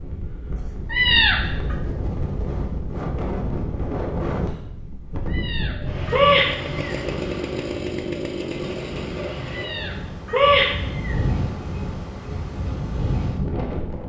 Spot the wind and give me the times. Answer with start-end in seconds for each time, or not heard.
0.0-14.0.